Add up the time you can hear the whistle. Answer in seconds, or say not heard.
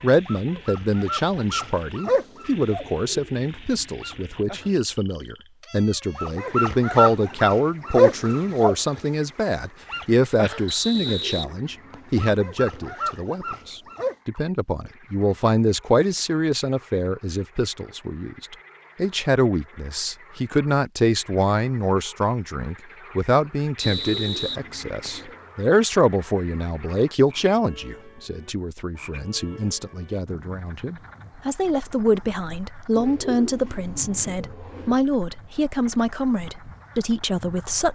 3 s.